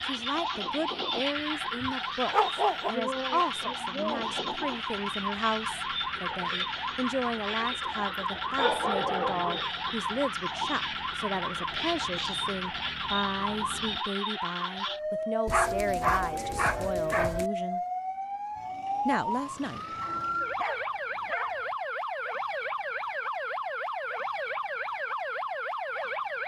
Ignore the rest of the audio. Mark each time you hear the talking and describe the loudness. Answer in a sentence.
You can hear the talking from 0.0 to 17.8 s, at a steady volume; and briefly from 19.1 to 19.9 s.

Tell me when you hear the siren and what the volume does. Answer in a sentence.
The siren can be heard from 0.0 to 26.4 s, at a steady volume.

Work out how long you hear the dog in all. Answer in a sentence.
You can hear the dog for 6 seconds altogether.